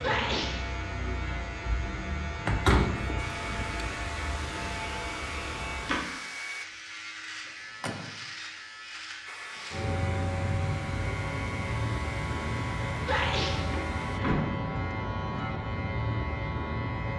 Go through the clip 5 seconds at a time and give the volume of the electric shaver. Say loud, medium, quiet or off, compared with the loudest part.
loud, medium, loud, loud.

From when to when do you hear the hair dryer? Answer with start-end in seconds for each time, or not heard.
3.1-6.7, 9.2-14.2.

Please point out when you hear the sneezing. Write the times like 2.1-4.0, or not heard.
0.0-0.7, 13.1-13.7.